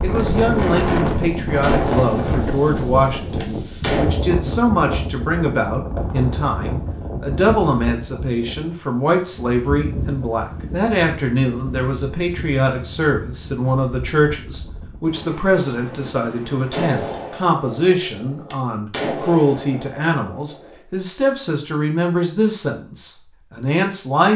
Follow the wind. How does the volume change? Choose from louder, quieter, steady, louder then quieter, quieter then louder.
quieter.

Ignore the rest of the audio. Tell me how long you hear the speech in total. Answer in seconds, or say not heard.
24 s.